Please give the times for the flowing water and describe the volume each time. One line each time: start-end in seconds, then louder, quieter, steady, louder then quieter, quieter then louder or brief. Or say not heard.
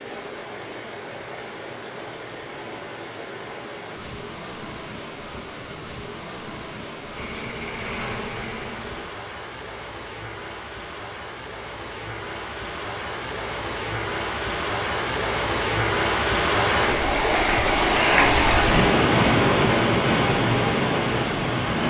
0.0-21.8 louder.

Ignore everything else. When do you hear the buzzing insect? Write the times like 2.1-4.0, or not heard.
7.1-9.1.